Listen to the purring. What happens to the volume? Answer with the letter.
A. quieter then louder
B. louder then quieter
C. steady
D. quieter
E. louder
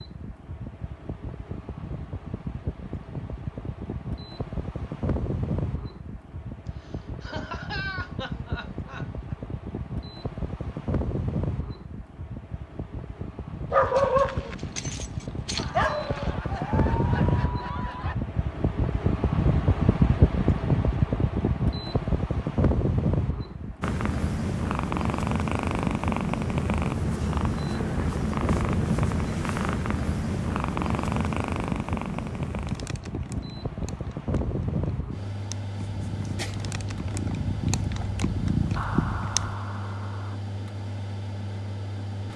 A.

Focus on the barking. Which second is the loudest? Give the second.
14 s.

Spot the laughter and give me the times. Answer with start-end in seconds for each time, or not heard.
6.8-9.3, 15.6-18.1, 38.8-40.4.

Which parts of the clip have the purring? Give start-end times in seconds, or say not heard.
23.8-39.5.